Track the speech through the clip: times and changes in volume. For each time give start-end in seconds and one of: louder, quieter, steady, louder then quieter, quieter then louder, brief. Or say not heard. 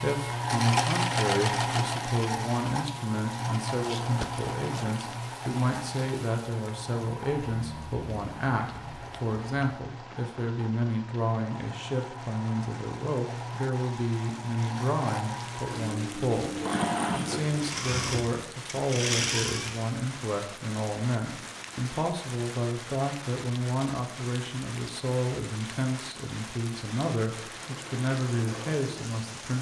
0.0-29.5 steady.